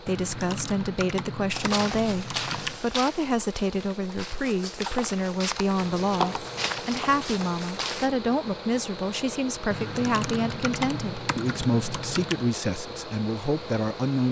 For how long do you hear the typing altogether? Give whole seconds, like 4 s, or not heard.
7 s.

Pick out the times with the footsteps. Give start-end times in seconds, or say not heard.
1.5-8.1.